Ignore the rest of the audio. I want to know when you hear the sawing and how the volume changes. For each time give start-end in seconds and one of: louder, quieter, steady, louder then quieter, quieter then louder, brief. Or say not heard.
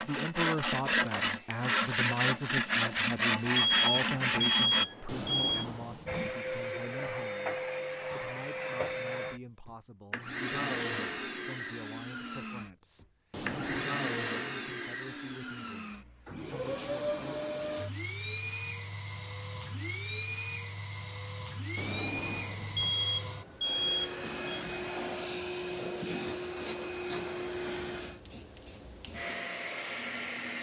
0.0-4.8 steady.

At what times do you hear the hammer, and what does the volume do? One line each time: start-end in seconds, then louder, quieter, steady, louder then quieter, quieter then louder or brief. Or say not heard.
not heard.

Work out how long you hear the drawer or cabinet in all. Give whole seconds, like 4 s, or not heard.
3 s.